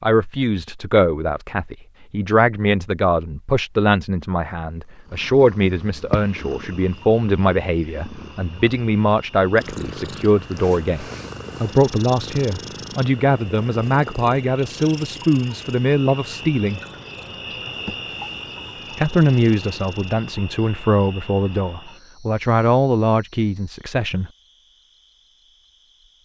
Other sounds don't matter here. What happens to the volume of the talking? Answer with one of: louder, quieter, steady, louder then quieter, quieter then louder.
steady.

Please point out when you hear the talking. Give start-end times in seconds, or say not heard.
0.0-16.8, 18.9-24.3.